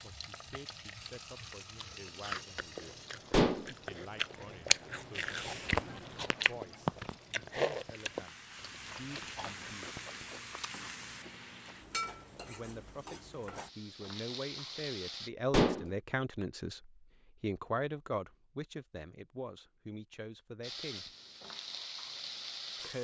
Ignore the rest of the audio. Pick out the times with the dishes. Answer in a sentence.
You can hear the dishes from 3.3 to 3.7 s and from 15.5 to 15.9 s.